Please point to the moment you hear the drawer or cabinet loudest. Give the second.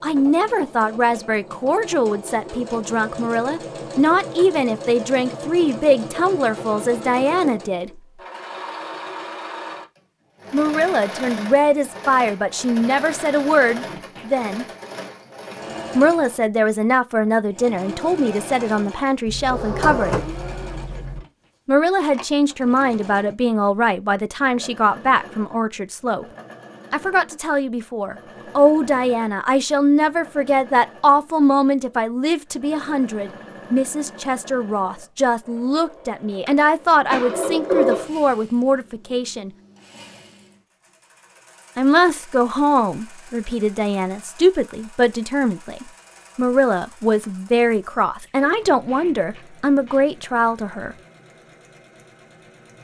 38 s.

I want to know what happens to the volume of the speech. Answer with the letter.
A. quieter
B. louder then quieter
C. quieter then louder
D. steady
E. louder
D.